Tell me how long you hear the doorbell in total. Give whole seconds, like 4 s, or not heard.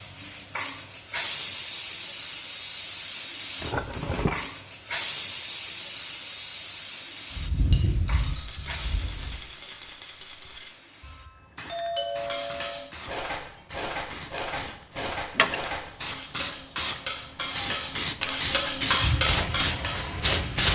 2 s.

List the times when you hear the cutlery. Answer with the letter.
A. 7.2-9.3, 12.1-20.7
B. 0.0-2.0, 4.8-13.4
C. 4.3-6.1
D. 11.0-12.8
A.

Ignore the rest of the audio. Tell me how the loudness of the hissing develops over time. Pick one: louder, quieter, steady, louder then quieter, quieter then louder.
quieter then louder.